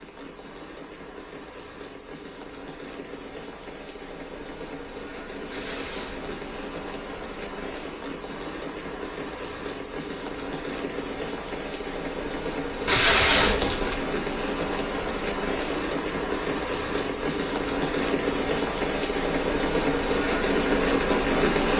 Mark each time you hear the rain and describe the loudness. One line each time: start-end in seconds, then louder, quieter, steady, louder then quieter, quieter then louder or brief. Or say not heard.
0.0-21.7 louder.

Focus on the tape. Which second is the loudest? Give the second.
13 s.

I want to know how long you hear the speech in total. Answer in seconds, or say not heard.
not heard.